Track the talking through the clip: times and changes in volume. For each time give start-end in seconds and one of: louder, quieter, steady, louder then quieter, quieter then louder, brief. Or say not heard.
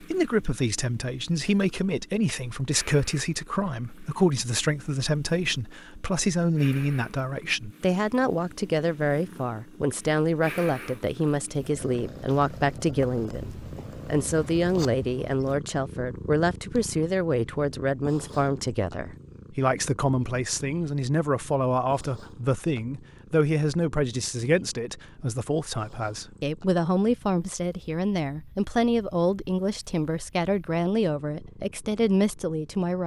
0.0-33.0 steady.